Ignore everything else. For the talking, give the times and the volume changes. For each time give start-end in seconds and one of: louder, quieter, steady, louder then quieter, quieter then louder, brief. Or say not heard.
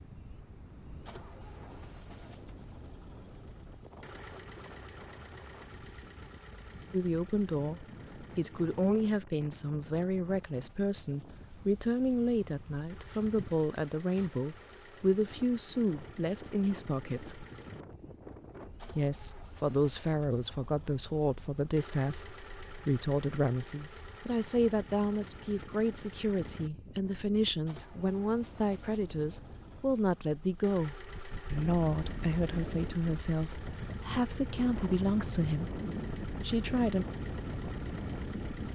6.9-17.4 steady
18.9-35.8 steady
36.4-37.0 brief.